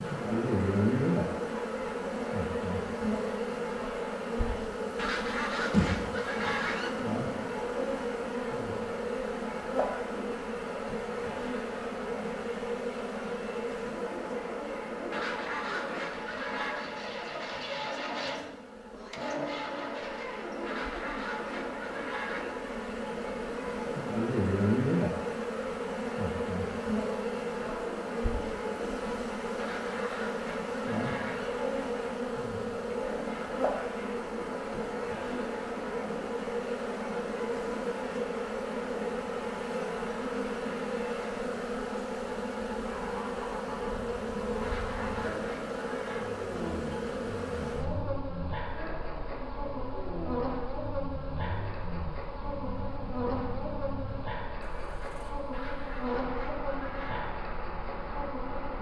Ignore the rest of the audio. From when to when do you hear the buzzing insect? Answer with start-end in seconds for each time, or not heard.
0.0-58.7.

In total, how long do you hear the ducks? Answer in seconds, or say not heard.
11 s.